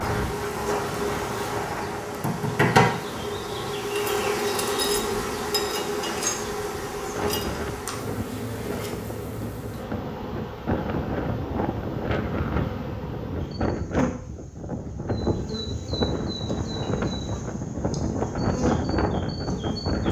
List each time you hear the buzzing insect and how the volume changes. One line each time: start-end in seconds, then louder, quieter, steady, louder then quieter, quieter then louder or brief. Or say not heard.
0.0-20.0 quieter.